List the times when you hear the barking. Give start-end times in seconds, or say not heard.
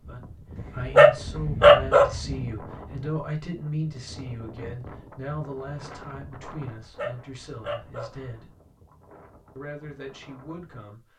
0.6-2.5, 6.8-8.3.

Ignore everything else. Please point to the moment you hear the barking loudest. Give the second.
2 s.